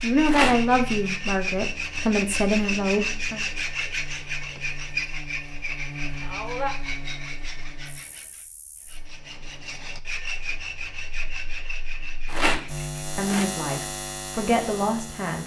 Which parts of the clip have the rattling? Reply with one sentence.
You can hear the rattling from 0.2 to 0.7 s and from 12.2 to 13.4 s.